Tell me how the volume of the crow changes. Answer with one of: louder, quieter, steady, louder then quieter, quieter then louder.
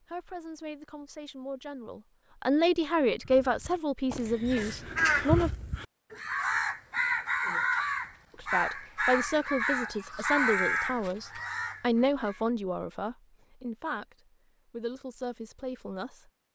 steady.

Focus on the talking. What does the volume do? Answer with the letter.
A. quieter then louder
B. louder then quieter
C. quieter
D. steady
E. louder
B.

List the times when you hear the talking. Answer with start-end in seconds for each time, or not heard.
0.0-5.5, 8.3-16.2.